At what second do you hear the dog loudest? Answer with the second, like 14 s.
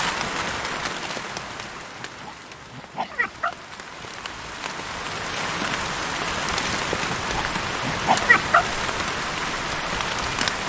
8 s.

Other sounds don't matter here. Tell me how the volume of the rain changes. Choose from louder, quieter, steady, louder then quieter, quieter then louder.
quieter then louder.